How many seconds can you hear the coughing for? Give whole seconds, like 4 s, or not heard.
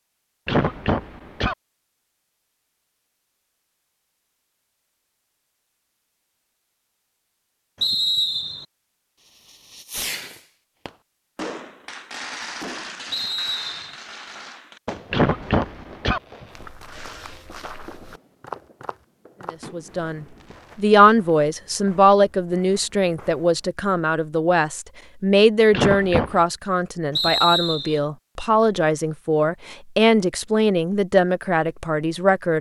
3 s.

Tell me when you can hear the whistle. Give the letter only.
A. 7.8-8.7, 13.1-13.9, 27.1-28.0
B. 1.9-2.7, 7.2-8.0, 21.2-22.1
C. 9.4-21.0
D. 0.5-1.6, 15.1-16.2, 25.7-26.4
A.